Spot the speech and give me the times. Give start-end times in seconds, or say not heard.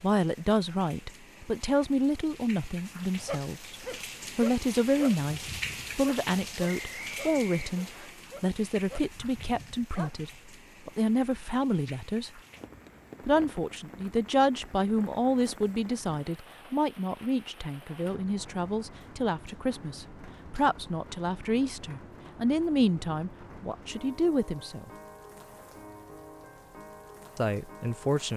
0.0-3.8, 4.3-12.4, 13.2-24.9, 27.4-28.3.